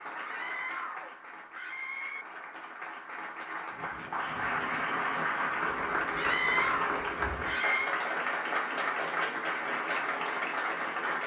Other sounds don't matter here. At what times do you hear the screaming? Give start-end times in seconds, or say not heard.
0.2-2.2, 6.2-8.0.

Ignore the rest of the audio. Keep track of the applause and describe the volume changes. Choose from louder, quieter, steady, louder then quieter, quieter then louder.
louder.